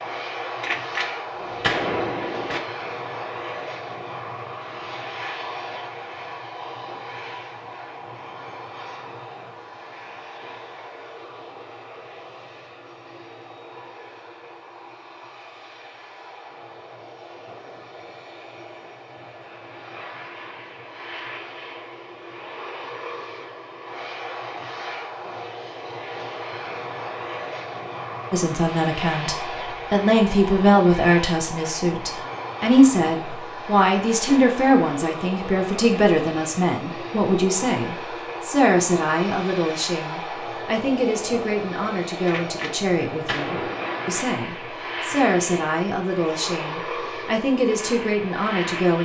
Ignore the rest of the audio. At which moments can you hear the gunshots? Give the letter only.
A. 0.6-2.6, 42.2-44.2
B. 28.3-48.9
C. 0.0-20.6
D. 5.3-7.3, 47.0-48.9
A.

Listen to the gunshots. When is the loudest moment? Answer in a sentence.
The loudest moment of the gunshots is at 2 seconds.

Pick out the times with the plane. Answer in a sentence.
You can hear the plane from 0.0 to 48.9 s.